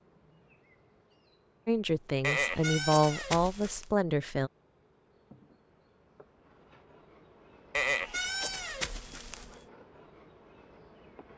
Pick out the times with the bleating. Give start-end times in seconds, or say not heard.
2.2-3.9, 7.7-9.6.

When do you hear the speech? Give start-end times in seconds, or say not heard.
1.6-4.5.